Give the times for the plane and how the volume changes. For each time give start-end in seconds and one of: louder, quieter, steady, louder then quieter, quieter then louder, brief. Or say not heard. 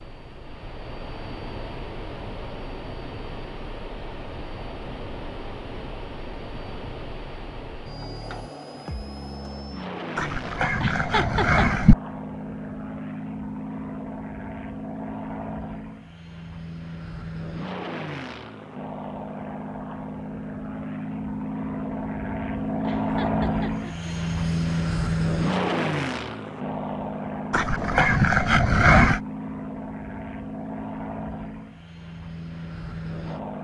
0.0-33.6 louder then quieter.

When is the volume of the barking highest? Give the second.
29 s.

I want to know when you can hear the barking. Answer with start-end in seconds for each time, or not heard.
10.2-11.9, 27.5-29.2.